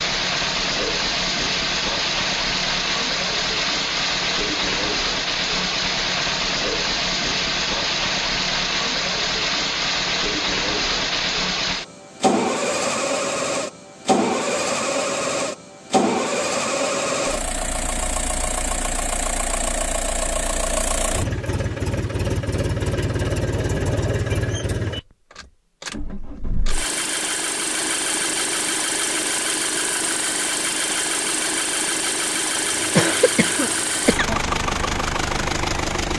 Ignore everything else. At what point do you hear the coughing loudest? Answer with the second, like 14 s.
33 s.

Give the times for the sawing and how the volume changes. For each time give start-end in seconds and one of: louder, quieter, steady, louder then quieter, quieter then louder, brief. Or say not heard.
not heard.